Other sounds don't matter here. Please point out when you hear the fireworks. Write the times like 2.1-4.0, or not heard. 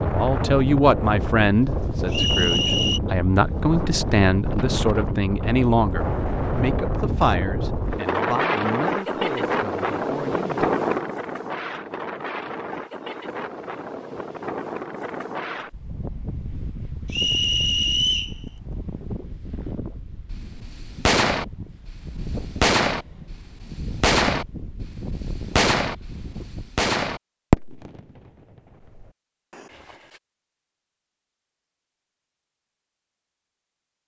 20.3-28.0, 28.9-29.9.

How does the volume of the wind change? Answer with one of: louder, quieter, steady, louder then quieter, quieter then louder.
quieter.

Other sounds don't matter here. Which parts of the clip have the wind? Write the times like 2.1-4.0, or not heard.
0.0-26.7.